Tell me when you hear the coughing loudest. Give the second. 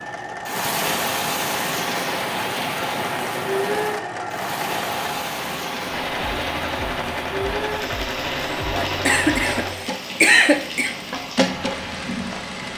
10 s.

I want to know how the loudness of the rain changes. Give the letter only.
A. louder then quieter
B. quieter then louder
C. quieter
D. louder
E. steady
C.